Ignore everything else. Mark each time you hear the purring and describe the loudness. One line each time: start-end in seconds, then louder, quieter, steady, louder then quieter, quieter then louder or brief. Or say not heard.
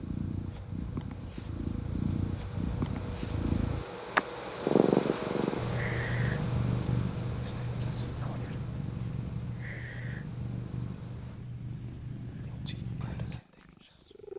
0.0-14.3 louder then quieter.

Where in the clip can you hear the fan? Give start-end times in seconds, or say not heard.
0.0-11.4.